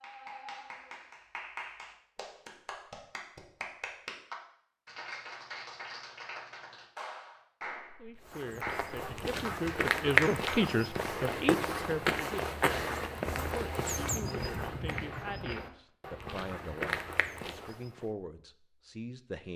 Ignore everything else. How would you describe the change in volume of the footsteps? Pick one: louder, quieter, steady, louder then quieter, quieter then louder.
quieter.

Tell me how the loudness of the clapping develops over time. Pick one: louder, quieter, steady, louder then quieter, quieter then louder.
louder.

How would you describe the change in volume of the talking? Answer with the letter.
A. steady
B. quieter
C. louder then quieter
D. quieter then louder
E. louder
B.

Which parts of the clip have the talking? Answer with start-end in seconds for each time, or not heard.
8.0-19.5.